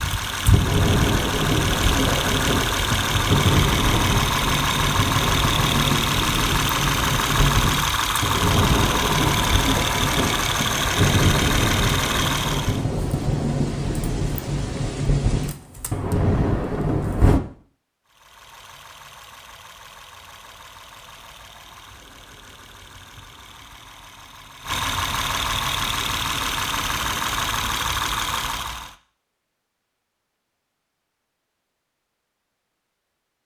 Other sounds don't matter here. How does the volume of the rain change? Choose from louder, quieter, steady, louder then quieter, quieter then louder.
steady.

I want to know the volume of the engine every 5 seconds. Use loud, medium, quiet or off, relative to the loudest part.
loud, loud, loud, quiet, quiet, loud, off.